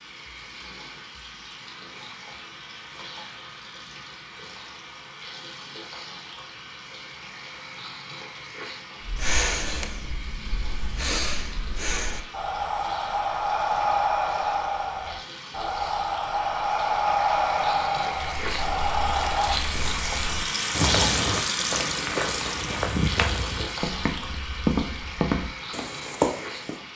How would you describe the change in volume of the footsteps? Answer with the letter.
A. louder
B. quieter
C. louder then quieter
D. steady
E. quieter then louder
A.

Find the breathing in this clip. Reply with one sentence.
The breathing can be heard from 9.0 to 19.6 s.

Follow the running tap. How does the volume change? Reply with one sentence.
The loudness of the running tap goes up.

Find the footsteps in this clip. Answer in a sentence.
You can hear the footsteps from 18.3 to 26.8 s.